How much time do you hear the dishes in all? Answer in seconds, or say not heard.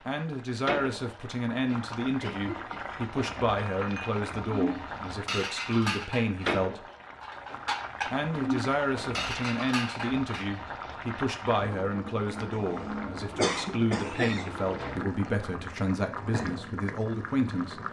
7 s.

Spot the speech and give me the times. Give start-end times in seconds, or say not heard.
0.1-6.8, 8.1-17.8.